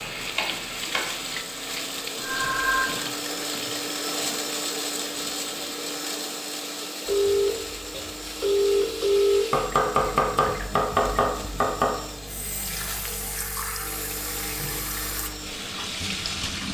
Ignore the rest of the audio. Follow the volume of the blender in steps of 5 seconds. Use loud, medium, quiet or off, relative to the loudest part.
loud, loud, medium, medium.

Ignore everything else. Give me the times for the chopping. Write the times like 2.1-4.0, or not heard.
0.1-1.1, 9.5-11.9.